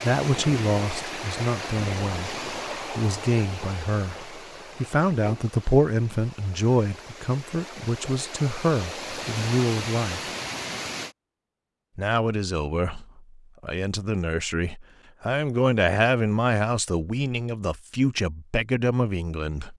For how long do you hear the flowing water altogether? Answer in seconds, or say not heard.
11 s.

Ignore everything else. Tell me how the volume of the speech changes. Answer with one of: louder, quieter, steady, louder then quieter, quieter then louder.
steady.